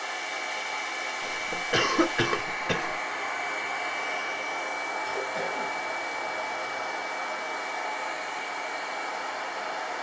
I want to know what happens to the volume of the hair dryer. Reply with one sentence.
The volume of the hair dryer stays about the same.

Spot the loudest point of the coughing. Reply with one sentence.
The volume of the coughing peaks at 2 seconds.